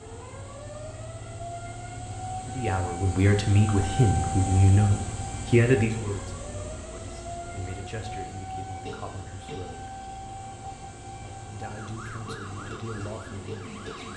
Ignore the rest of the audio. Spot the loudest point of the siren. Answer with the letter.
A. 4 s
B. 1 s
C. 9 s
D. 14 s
A.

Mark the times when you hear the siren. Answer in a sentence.
You can hear the siren from 0.0 to 14.1 s.